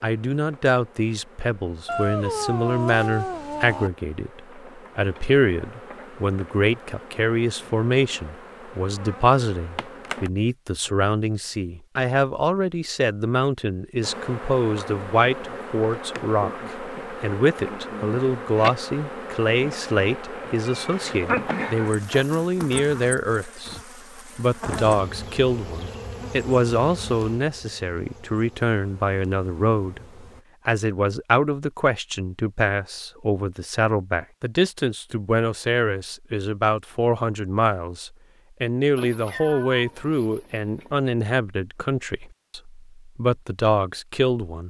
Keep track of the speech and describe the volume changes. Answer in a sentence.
The volume of the speech stays about the same.